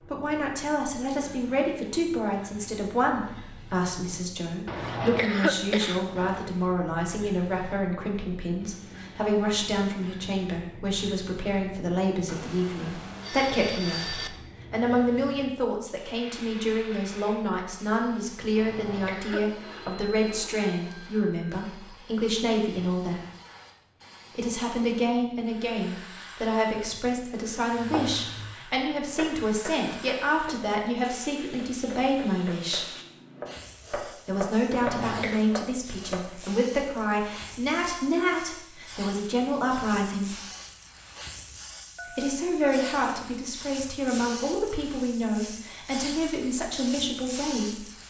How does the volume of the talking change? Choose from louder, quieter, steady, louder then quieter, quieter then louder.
steady.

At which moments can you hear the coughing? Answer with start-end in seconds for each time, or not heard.
4.7-6.5, 18.6-19.4, 34.7-35.5.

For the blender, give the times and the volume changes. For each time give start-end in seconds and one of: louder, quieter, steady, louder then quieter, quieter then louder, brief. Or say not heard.
not heard.